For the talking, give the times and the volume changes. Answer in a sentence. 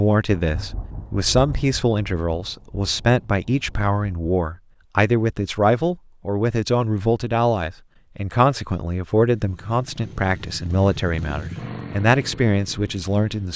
You can hear the talking from 0.0 to 13.5 s, at a steady volume.